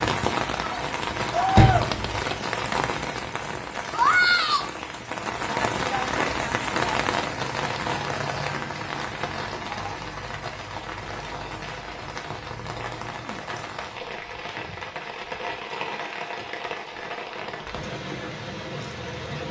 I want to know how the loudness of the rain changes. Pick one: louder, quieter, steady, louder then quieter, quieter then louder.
quieter.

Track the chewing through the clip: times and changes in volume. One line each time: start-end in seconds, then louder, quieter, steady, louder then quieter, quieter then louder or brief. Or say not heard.
not heard.